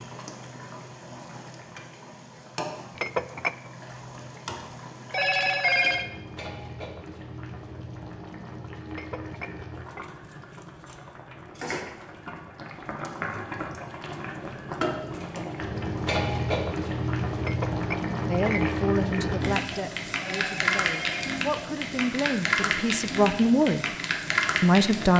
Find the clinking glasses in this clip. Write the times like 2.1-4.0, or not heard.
3.0-3.6, 8.9-10.1, 17.4-18.8.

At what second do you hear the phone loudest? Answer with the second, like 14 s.
6 s.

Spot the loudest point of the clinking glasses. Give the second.
3 s.